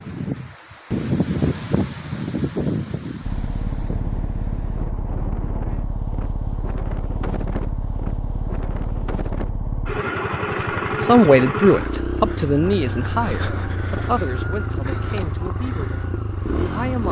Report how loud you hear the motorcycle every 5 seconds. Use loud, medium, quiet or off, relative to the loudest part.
medium, medium, loud, loud.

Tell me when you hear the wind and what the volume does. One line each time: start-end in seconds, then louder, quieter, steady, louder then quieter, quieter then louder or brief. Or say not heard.
0.0-9.5 quieter.